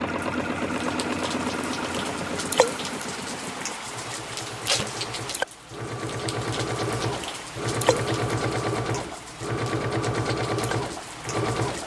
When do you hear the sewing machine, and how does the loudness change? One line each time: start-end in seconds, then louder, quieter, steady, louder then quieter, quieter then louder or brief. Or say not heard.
0.0-11.8 quieter then louder.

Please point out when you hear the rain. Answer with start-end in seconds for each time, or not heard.
0.1-11.8.